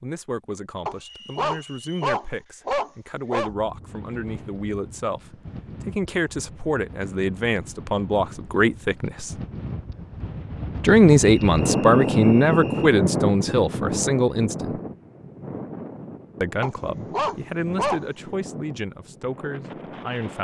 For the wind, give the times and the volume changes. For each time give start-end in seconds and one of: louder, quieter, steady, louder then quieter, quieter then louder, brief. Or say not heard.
3.5-20.3 louder then quieter.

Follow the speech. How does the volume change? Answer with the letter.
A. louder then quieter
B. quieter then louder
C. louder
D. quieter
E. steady
A.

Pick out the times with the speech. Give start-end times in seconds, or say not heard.
0.0-9.3, 10.8-14.8, 16.4-20.3.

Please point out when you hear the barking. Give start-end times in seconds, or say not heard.
0.8-3.5, 16.6-18.1.